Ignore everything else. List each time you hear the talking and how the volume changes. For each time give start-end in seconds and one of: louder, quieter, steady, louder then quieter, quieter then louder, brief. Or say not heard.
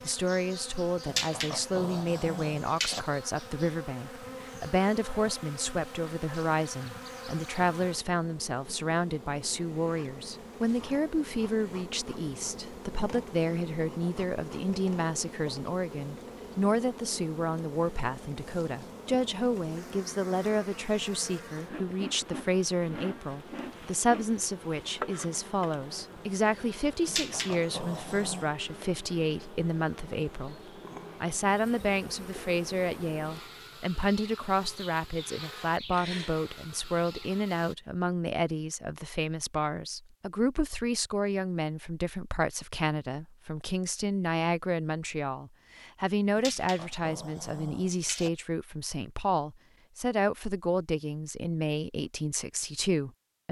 0.0-30.6 steady
31.2-53.4 steady.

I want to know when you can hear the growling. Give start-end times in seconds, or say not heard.
1.1-3.0, 27.1-28.5, 46.4-48.3.